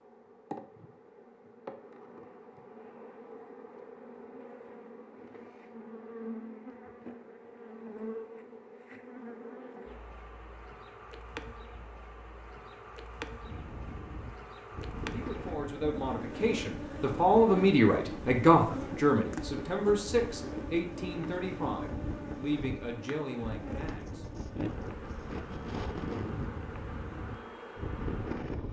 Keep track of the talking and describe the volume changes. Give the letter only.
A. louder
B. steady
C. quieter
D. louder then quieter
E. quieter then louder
D.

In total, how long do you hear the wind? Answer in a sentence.
The wind can be heard for 15 seconds in total.